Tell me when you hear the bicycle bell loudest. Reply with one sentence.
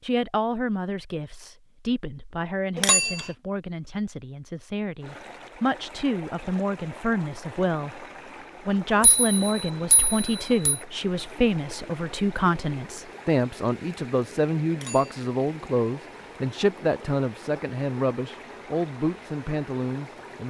The volume of the bicycle bell peaks at 3 seconds.